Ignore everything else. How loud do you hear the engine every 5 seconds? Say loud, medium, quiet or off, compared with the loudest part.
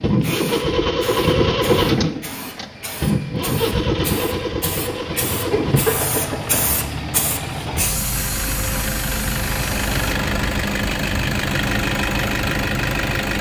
loud, medium, loud.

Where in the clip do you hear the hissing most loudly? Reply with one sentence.
The loudest moment of the hissing is at 6 seconds.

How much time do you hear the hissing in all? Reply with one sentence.
You can hear the hissing for 10 seconds altogether.